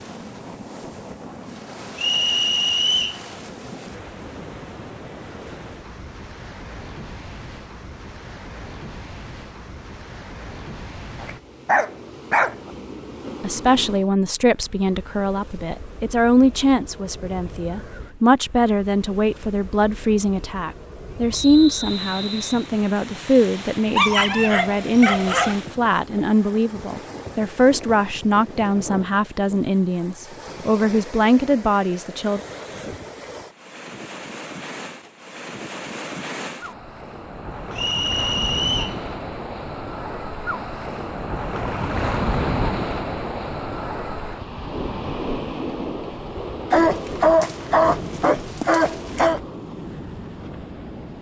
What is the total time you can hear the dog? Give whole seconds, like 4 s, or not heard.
6 s.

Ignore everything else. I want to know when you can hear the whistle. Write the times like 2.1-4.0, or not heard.
1.9-3.2, 21.3-22.7, 37.8-39.0.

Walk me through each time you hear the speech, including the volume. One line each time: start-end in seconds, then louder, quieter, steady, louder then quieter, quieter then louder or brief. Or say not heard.
13.4-32.4 steady.